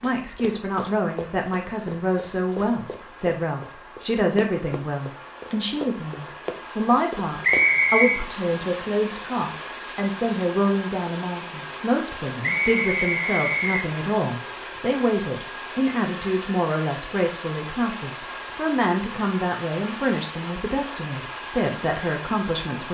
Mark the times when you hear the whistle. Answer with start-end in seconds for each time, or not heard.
7.4-8.2, 12.4-13.8.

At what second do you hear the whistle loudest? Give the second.
8 s.